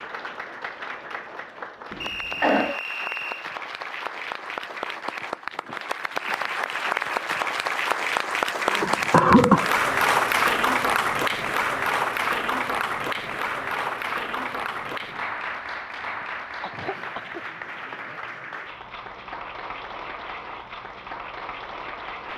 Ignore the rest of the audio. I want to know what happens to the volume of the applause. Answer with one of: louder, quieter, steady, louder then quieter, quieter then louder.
louder then quieter.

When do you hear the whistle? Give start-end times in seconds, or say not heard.
2.0-3.5.